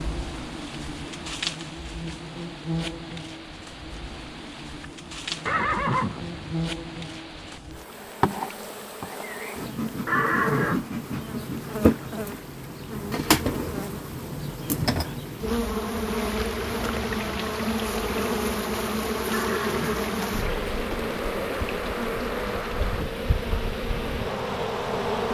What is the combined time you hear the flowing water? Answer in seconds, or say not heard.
25 s.